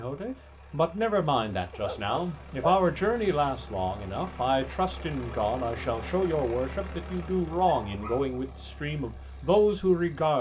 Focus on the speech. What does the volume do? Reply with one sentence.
The loudness of the speech stays about the same.